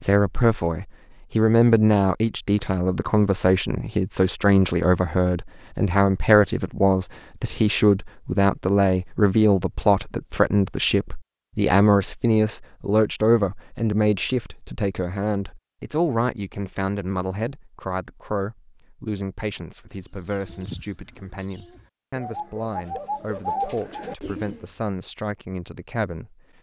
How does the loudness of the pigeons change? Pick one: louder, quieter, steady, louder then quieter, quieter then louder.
quieter then louder.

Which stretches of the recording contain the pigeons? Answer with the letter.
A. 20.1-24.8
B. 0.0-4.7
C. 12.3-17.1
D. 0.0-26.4
A.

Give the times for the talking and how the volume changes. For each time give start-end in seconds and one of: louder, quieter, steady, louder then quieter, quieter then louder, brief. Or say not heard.
0.0-26.4 quieter.